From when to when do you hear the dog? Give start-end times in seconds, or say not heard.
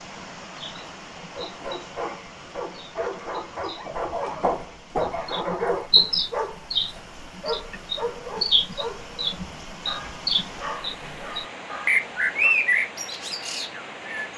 1.1-12.5.